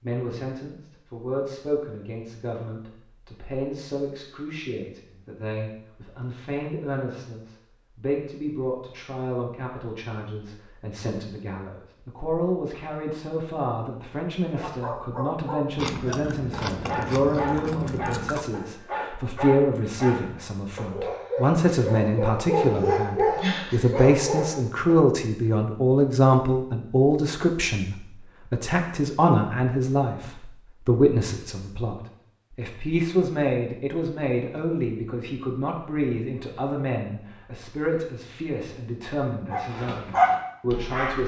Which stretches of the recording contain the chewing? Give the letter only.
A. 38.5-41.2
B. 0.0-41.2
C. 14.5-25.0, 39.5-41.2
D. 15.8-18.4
D.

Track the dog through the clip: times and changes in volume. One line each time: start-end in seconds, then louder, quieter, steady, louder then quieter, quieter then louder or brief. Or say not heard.
14.5-25.0 louder
39.5-41.2 brief.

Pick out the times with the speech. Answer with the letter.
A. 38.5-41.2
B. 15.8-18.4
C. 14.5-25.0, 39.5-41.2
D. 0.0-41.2
D.